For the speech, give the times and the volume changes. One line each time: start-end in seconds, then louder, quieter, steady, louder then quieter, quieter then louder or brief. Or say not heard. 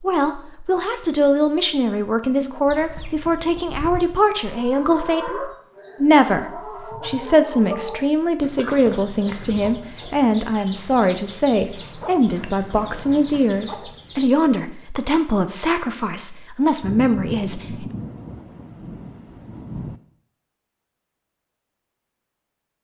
0.0-17.9 steady.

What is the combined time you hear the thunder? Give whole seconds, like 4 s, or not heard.
3 s.